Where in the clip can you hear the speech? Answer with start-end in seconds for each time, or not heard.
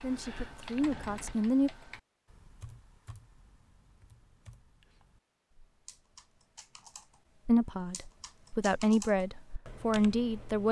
0.0-1.7, 7.5-10.6.